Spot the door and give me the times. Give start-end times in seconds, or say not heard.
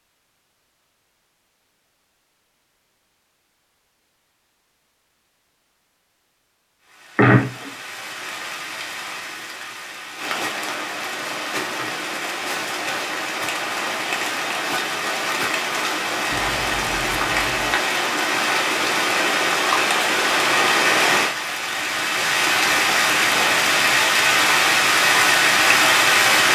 not heard.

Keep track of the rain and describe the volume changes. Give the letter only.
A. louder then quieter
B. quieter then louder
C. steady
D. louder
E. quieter
D.